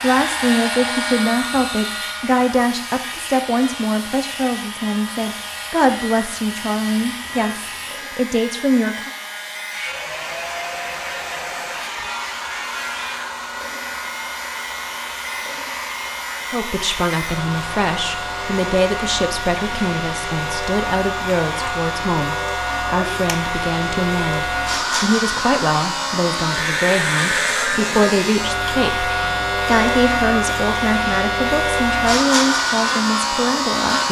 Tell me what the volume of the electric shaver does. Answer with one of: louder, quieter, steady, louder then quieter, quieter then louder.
louder.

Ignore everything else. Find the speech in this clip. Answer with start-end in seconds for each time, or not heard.
0.0-9.1, 16.5-34.0.